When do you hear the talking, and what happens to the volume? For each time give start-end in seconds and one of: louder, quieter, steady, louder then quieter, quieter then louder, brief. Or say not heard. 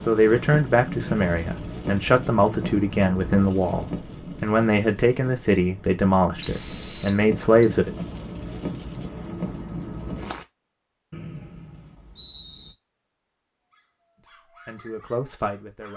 0.1-7.9 steady
14.2-15.9 brief.